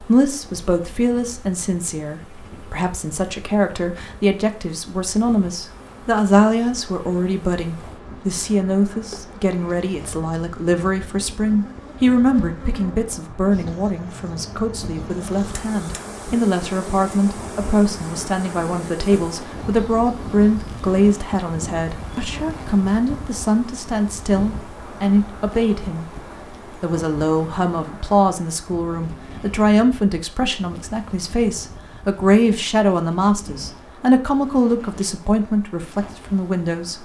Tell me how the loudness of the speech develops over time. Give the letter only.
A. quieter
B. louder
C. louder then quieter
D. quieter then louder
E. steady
E.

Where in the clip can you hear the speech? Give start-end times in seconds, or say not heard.
0.0-36.9.